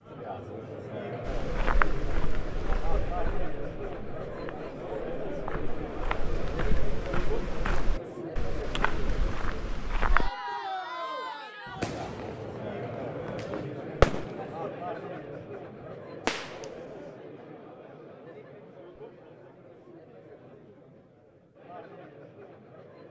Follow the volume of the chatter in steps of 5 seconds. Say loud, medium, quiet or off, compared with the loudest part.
loud, loud, loud, medium, quiet.